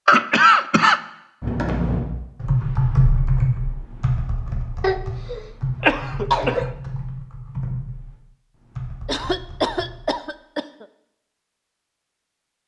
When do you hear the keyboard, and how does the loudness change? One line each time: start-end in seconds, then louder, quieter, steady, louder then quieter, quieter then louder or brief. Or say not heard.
1.4-10.2 quieter.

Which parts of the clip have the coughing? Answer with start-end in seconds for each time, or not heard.
0.1-1.0, 4.8-6.8, 9.1-10.8.